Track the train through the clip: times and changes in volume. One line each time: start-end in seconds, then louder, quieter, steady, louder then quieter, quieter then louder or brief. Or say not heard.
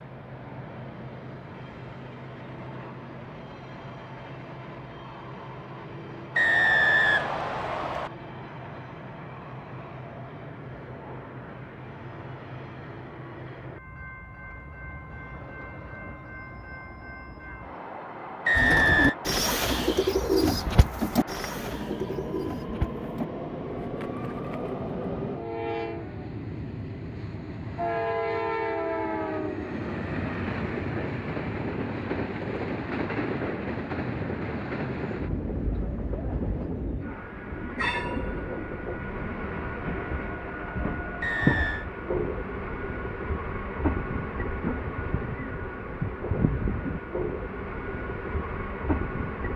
0.0-49.5 louder.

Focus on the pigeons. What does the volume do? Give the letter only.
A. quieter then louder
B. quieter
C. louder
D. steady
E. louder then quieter
B.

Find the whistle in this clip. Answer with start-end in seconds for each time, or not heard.
6.3-8.1, 18.4-19.1, 41.2-41.9.